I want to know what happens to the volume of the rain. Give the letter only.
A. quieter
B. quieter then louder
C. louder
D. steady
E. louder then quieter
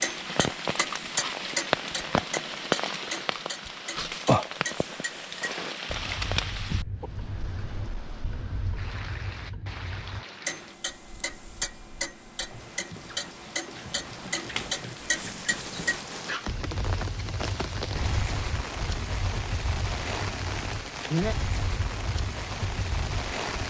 B.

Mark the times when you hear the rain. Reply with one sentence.
You can hear the rain from 0.0 to 23.6 s.